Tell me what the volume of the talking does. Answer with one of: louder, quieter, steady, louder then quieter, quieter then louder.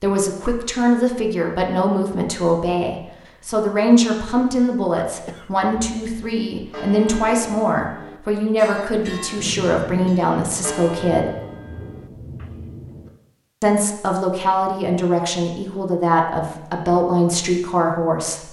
steady.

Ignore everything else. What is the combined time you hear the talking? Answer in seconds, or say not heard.
16 s.